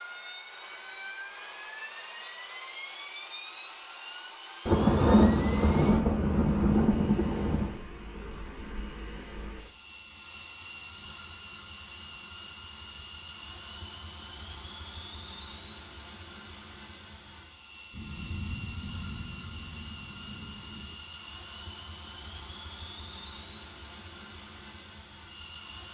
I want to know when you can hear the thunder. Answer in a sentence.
The thunder can be heard from 4.7 to 7.8 s and from 17.9 to 20.9 s.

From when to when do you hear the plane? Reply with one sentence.
You can hear the plane from 0.0 to 25.8 s.